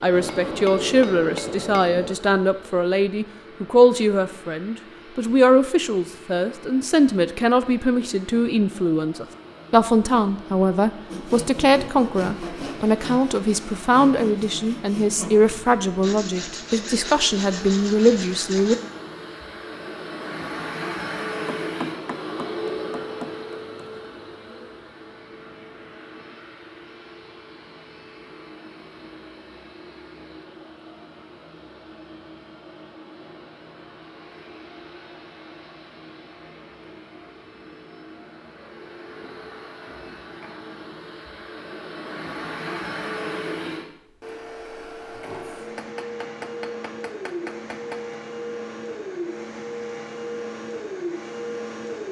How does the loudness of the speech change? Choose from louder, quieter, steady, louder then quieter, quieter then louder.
steady.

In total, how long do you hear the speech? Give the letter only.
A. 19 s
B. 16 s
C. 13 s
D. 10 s
A.